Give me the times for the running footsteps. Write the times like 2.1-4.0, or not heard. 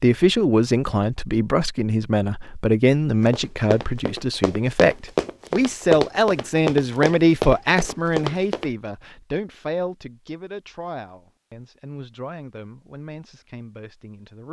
3.2-8.7.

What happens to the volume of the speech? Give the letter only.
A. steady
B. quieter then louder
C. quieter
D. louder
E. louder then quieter
C.